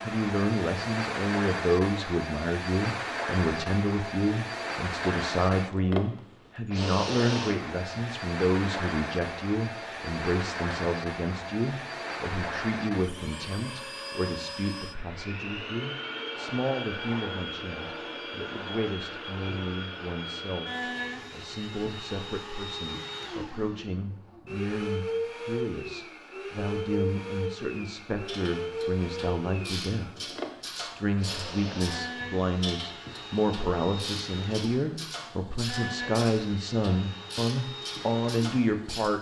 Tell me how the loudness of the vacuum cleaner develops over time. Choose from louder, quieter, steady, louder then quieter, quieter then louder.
quieter.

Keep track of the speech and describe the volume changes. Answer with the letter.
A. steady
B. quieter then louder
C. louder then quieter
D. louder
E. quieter
B.